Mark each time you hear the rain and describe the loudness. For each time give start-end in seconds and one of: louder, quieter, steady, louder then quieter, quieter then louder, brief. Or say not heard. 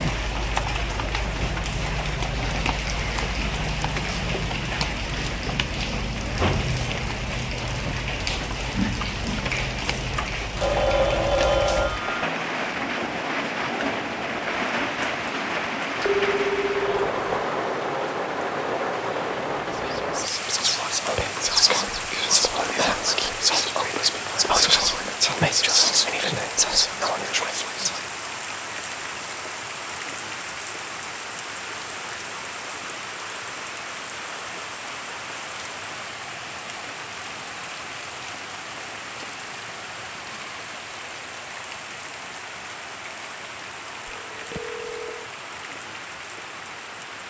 0.0-47.2 quieter.